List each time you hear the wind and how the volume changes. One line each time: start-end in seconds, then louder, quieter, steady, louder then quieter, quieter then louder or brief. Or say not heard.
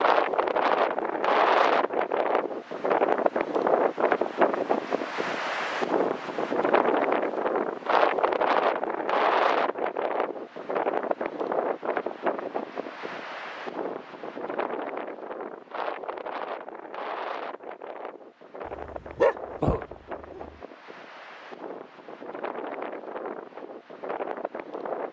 0.0-25.0 quieter.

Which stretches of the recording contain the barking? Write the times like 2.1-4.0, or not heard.
18.9-20.4.